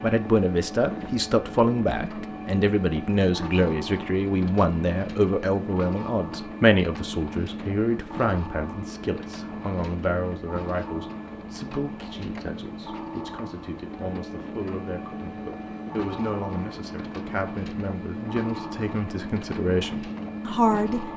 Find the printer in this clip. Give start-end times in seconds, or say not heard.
0.0-21.1.